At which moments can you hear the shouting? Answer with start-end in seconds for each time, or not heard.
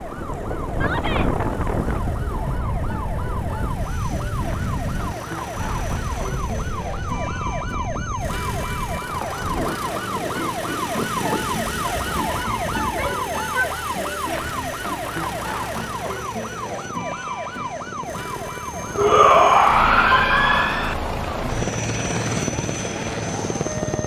0.7-1.3, 12.8-13.7, 18.9-20.9.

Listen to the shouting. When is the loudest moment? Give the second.
19 s.